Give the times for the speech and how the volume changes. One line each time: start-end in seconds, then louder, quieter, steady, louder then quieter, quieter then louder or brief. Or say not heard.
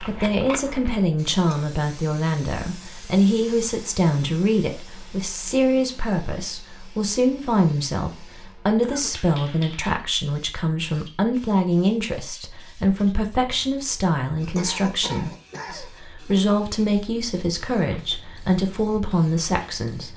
0.0-20.1 steady.